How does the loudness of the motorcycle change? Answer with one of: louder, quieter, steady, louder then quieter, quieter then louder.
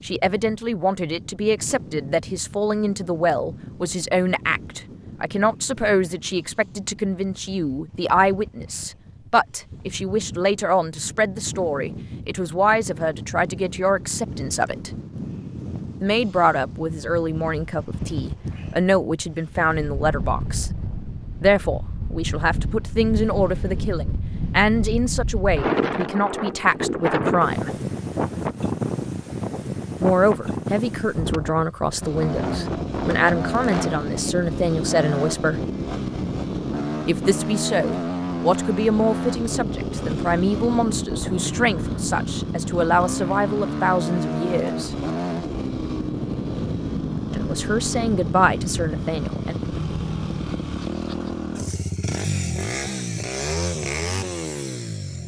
steady.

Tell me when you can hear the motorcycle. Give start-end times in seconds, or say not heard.
32.0-55.2.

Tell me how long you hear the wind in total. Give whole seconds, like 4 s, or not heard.
34 s.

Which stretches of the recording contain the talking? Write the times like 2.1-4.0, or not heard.
0.0-14.9, 16.0-20.7, 21.4-27.7, 30.0-35.6, 37.0-45.0, 47.4-49.5.